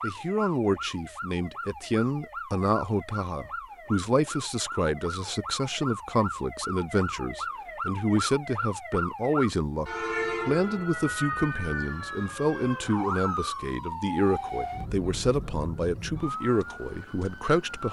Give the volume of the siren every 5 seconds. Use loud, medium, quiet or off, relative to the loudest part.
medium, loud, loud, medium.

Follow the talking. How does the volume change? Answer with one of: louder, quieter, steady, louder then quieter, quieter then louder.
steady.